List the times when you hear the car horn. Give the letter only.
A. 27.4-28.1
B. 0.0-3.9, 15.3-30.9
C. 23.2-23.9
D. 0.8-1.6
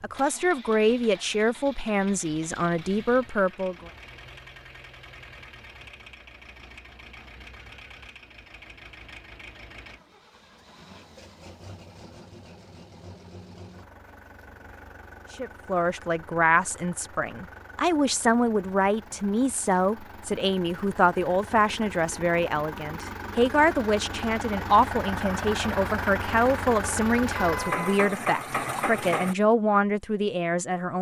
A.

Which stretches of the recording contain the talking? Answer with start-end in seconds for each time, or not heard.
0.0-3.9, 15.3-30.9.